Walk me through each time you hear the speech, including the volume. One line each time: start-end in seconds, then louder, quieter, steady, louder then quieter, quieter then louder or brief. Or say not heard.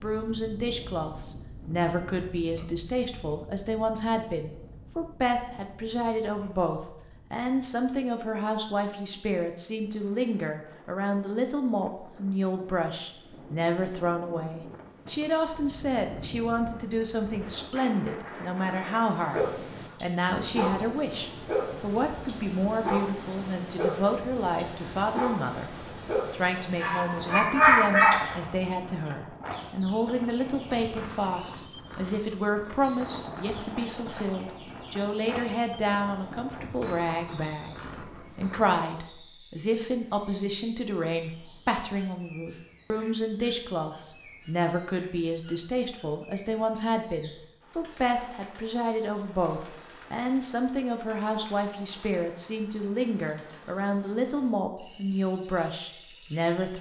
0.0-25.7 steady
26.3-56.7 steady.